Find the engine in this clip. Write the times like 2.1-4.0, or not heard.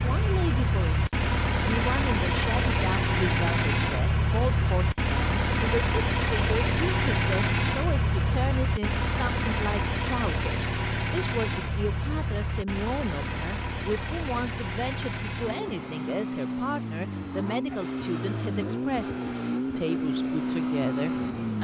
0.0-21.5.